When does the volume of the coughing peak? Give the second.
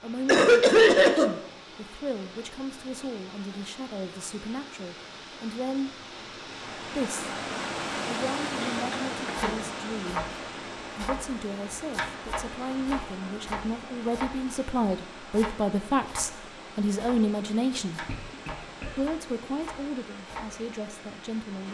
1 s.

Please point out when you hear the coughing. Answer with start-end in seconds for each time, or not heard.
0.2-1.4, 8.6-9.6, 18.1-18.9.